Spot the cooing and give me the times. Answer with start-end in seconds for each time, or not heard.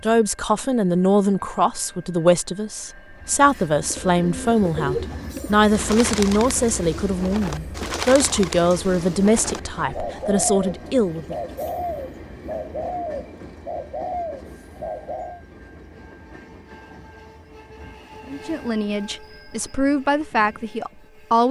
3.8-15.4.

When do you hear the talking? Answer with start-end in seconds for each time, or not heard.
0.0-11.3, 18.2-21.4.